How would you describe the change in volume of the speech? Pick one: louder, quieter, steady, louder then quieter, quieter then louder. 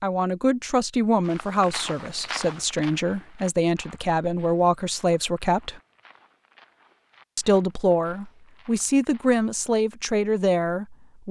steady.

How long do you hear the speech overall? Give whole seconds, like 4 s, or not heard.
10 s.